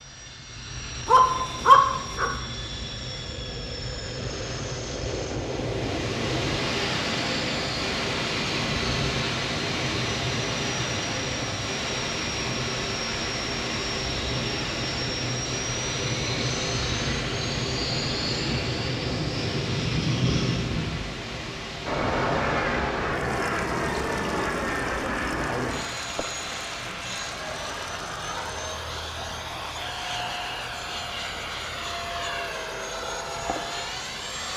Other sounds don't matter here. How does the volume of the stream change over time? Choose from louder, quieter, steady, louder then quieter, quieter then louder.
quieter.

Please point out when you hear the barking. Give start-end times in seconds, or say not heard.
1.1-2.3.